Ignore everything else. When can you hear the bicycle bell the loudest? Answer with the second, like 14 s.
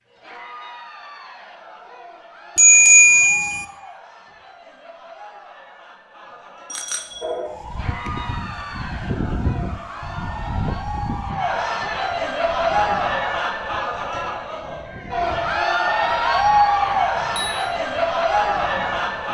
3 s.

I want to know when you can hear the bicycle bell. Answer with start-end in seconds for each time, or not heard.
2.5-3.6, 6.7-7.2, 16.8-17.4.